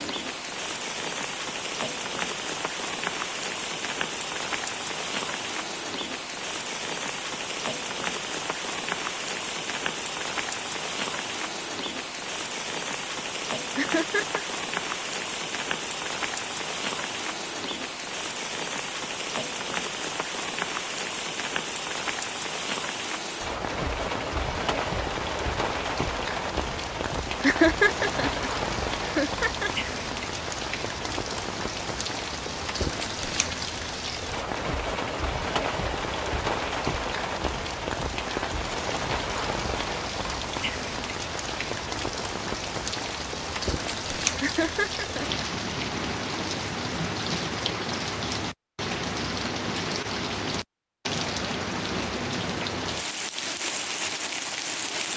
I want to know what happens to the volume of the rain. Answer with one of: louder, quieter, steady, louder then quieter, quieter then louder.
steady.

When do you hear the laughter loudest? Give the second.
28 s.